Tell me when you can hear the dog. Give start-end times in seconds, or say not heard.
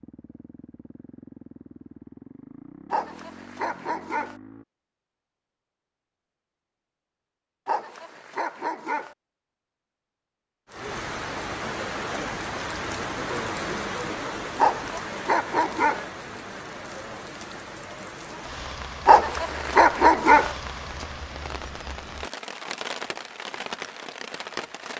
2.9-4.3, 7.7-9.2, 14.6-16.1, 19.1-20.6.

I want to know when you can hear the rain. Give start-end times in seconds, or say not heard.
10.7-24.9.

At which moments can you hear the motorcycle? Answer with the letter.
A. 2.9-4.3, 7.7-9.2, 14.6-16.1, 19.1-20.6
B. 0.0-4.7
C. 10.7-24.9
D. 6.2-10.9
B.